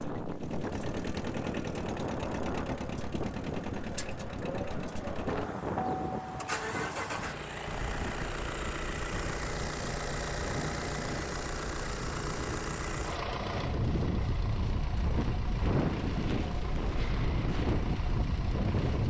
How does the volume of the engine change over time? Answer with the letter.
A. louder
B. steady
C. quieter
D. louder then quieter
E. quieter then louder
C.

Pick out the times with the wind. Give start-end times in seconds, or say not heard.
0.0-19.0.